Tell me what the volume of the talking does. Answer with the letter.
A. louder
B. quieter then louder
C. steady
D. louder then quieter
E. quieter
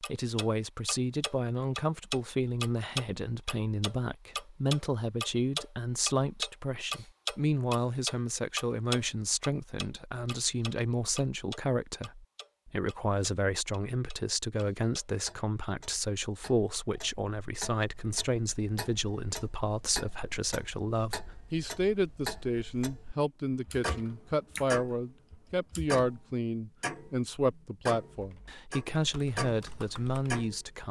C.